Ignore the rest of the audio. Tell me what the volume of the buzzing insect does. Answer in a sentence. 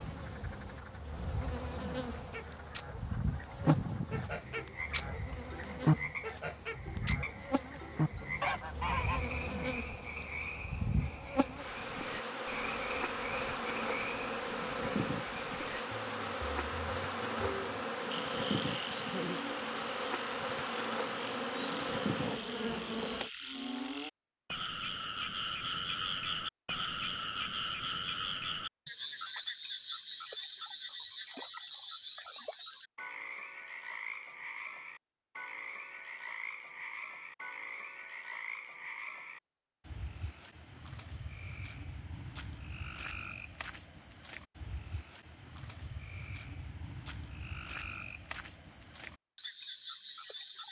The loudness of the buzzing insect goes up.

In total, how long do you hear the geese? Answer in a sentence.
The geese can be heard for 7 seconds in total.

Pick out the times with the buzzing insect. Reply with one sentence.
The buzzing insect can be heard from 0.0 to 23.3 s.